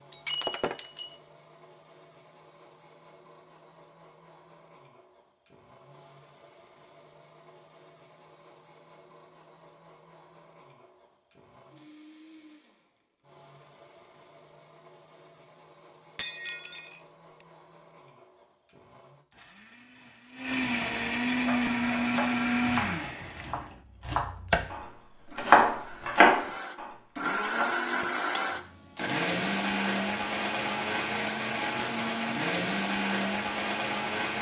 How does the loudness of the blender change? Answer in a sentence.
The loudness of the blender goes up.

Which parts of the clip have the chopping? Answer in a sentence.
You can hear the chopping from 21.4 to 27.8 s.